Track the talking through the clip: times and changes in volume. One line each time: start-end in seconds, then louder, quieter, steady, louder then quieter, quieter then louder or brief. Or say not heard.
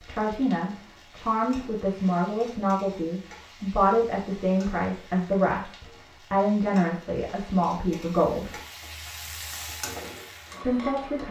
0.0-8.6 steady
10.6-11.2 brief.